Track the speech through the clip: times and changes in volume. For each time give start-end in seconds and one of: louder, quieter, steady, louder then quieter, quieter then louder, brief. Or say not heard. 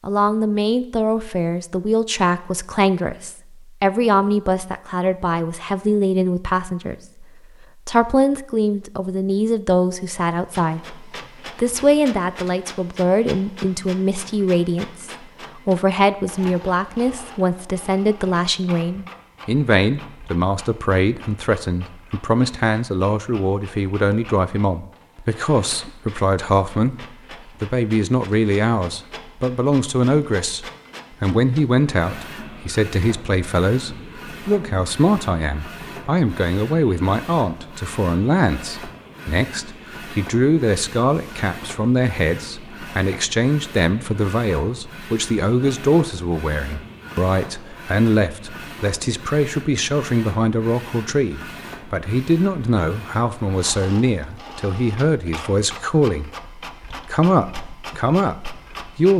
0.0-7.2 steady
7.8-59.1 steady.